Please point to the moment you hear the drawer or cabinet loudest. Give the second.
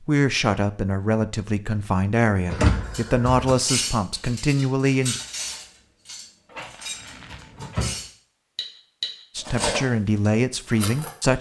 3 s.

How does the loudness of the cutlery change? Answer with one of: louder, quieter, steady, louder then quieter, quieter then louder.
quieter then louder.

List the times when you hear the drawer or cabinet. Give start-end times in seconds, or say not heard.
2.5-3.5, 6.5-8.0.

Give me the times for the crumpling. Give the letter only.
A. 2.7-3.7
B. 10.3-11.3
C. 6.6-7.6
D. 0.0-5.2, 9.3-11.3
C.